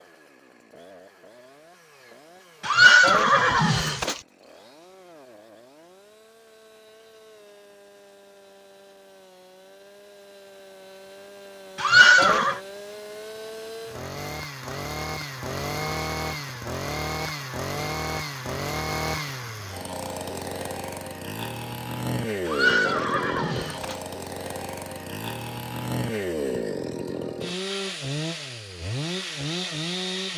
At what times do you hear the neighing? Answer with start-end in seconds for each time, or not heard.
2.6-4.2, 11.8-12.6, 22.4-24.0.